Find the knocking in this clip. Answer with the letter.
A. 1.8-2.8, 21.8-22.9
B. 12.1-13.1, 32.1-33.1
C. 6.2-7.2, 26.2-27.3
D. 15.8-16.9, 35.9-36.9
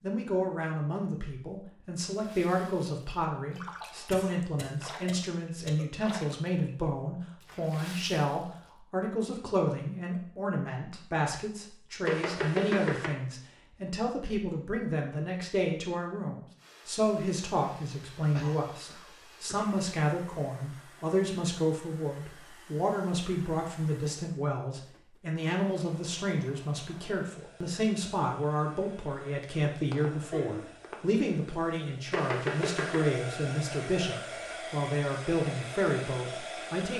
B.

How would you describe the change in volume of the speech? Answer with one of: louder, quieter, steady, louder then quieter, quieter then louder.
steady.